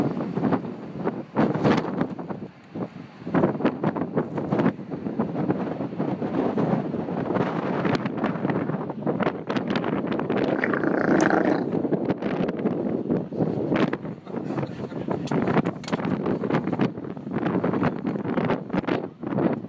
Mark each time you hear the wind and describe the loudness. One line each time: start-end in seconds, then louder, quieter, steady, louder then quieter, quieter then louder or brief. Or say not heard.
0.0-19.6 steady.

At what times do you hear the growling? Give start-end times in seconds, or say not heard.
10.6-11.7.